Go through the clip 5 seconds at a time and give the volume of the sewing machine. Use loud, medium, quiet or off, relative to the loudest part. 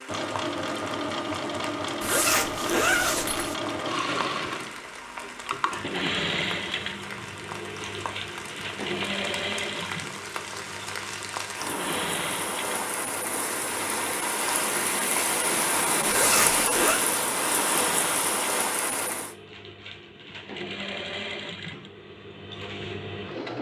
loud, loud, medium, medium, medium.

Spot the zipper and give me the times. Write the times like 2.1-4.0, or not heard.
2.0-3.5, 16.1-17.0.